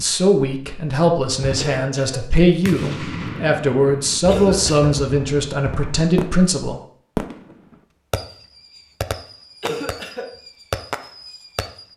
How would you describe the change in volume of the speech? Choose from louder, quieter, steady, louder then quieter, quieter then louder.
steady.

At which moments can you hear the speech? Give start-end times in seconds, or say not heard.
0.0-6.8.